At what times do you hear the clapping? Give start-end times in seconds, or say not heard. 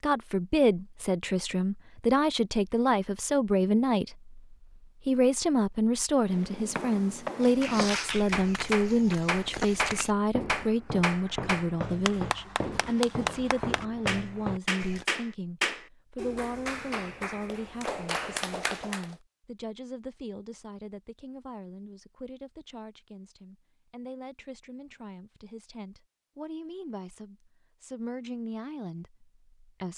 7.4-19.1.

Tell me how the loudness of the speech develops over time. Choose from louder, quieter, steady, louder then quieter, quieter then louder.
quieter.